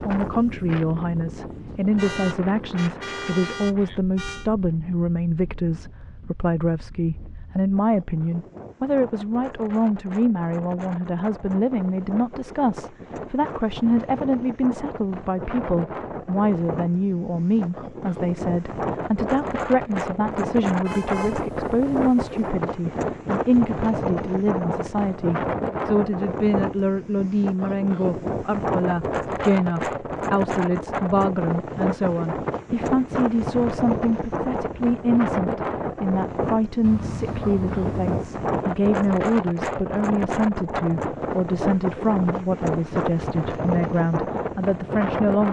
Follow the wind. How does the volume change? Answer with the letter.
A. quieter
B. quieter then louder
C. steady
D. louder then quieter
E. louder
E.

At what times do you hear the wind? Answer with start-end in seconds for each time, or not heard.
0.0-45.4.